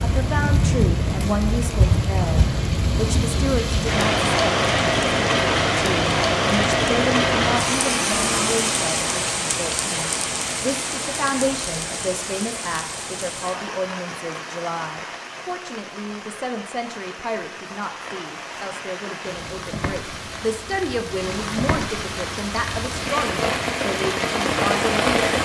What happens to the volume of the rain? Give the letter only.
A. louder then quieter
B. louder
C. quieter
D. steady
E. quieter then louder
E.